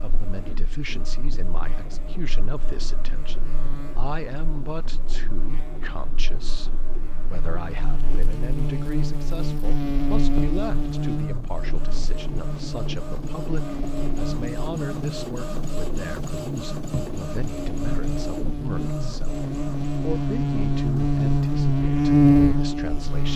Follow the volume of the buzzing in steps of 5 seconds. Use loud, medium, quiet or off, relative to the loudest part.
quiet, quiet, medium, medium, loud.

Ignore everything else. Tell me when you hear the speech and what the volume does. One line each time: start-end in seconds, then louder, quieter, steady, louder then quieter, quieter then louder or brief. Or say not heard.
0.0-23.3 steady.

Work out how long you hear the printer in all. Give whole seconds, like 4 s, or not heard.
23 s.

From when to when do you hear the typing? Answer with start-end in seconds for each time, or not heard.
not heard.